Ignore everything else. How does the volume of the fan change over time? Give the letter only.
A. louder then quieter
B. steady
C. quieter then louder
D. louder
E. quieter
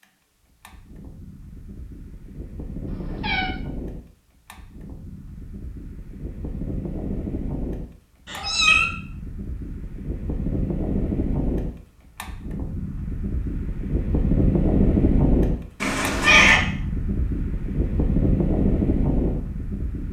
D.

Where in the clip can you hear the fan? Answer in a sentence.
The fan can be heard from 0.0 to 20.0 s.